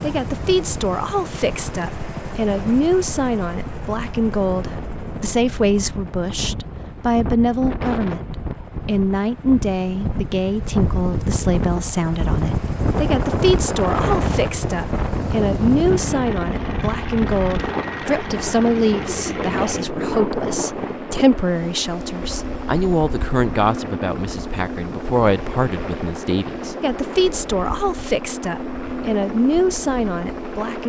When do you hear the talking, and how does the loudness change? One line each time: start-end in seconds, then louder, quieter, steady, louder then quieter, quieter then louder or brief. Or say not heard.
0.0-30.8 steady.